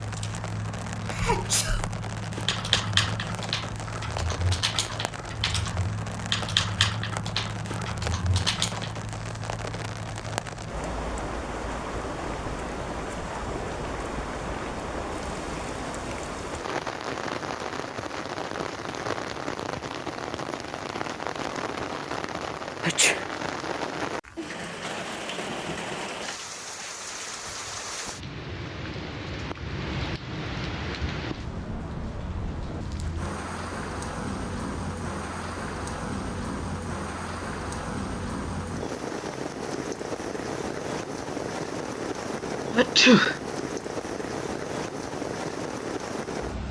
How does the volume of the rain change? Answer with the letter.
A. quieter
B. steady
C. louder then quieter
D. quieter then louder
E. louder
B.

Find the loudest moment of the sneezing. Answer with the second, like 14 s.
43 s.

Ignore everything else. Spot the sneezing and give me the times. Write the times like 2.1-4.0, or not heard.
1.1-1.8, 22.8-23.2, 42.7-43.4.